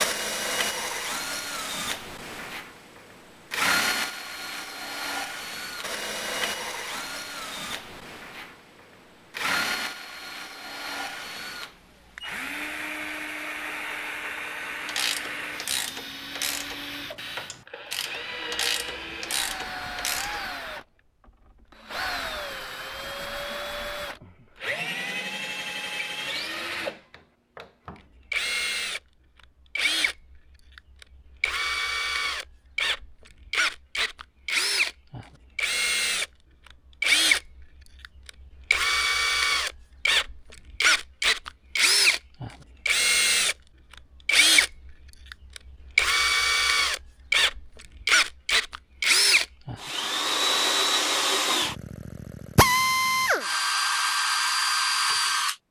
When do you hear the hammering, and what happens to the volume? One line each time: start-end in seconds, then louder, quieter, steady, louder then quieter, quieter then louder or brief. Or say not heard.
not heard.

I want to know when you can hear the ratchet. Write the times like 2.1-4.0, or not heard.
14.8-20.4.